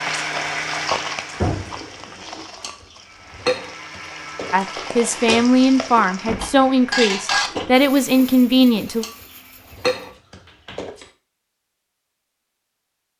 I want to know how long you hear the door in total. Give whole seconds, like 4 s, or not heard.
2 s.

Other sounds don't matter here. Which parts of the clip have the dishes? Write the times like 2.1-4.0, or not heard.
1.6-11.1.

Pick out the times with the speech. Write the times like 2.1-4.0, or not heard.
4.5-9.1.